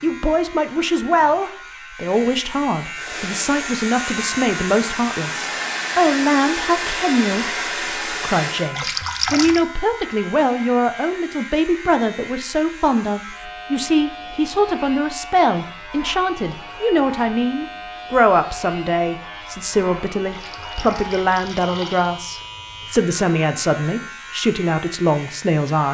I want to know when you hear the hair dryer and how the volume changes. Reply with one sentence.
You can hear the hair dryer from 2.9 to 8.8 s, getting louder.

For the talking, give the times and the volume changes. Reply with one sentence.
The talking can be heard from 0.0 to 25.9 s, at a steady volume.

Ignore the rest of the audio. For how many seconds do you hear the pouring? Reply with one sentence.
The pouring can be heard for 3 seconds in total.